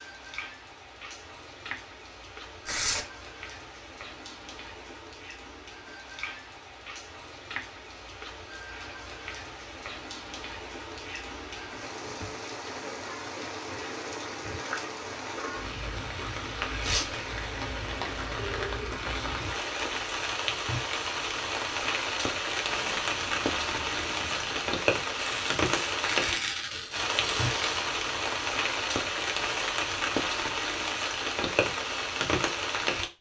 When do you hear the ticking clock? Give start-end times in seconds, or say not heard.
not heard.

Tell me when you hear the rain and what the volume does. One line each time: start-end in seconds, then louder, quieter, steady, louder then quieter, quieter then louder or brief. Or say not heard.
0.0-33.0 louder.